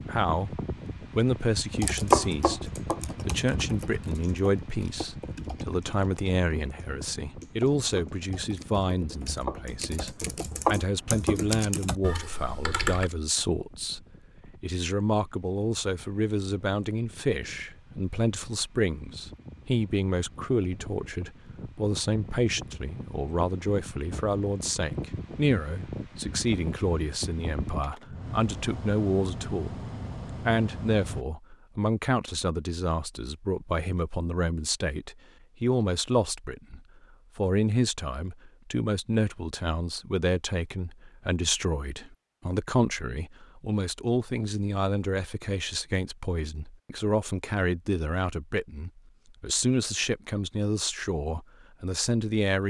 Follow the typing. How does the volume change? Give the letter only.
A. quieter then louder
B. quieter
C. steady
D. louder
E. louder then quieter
A.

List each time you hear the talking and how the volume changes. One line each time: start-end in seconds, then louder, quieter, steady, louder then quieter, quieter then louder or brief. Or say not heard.
0.0-52.6 steady.